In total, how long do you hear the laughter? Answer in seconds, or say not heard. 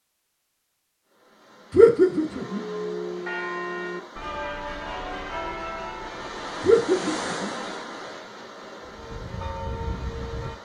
2 s.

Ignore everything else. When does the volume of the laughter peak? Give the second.
2 s.